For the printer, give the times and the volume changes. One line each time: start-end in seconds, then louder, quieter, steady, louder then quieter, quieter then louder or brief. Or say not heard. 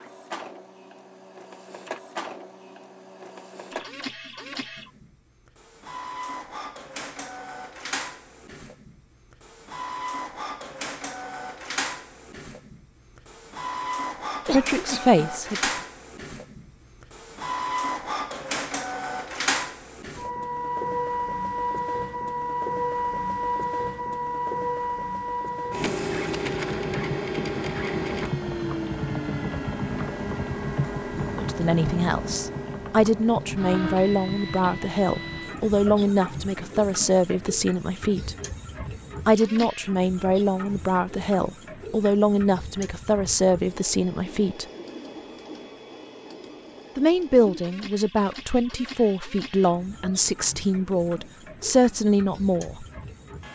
0.0-53.4 louder then quieter.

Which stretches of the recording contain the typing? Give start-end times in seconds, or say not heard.
25.5-35.5.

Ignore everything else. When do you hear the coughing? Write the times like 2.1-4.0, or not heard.
14.4-15.2.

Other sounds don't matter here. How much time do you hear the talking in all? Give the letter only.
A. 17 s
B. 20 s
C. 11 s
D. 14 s
B.